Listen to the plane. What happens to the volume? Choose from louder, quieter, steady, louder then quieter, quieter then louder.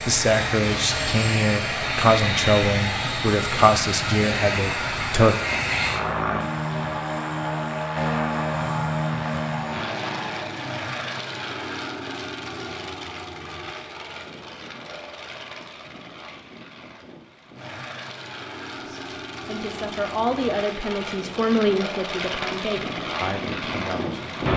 quieter then louder.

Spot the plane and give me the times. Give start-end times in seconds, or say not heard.
0.0-24.5.